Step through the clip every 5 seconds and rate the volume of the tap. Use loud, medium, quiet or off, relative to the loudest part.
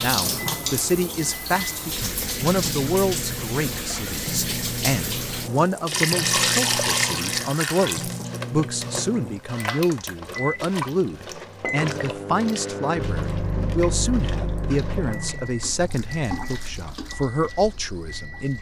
loud, loud, medium, quiet.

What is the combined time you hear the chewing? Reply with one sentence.
You can't hear the chewing here.